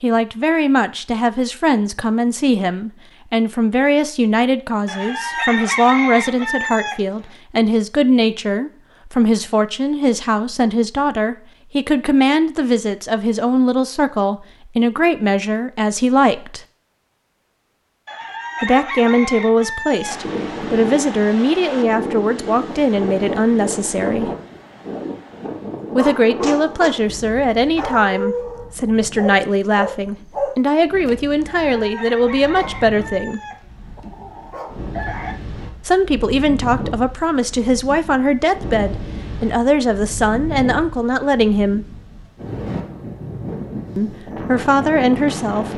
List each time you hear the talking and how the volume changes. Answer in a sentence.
You can hear the talking from 0.0 to 16.6 s, at a steady volume; from 18.6 to 24.3 s, at a steady volume; from 25.9 to 33.4 s, at a steady volume; from 35.9 to 42.0 s, at a steady volume; and briefly from 44.0 to 45.7 s.